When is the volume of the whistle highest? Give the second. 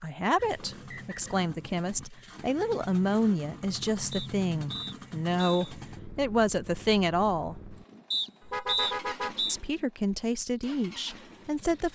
9 s.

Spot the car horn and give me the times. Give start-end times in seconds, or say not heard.
8.4-9.5.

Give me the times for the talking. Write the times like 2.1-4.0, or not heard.
0.0-7.5, 9.4-11.9.